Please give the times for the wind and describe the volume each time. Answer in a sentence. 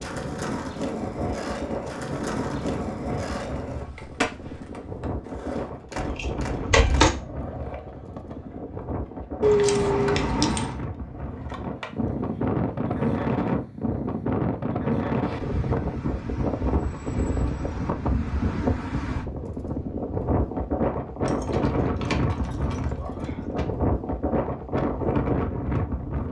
The wind can be heard from 0.0 to 26.2 s, getting louder.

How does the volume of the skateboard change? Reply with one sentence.
The volume of the skateboard goes down.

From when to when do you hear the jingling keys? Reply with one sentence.
The jingling keys can be heard from 6.0 to 7.2 s, from 9.4 to 10.8 s and from 21.2 to 23.6 s.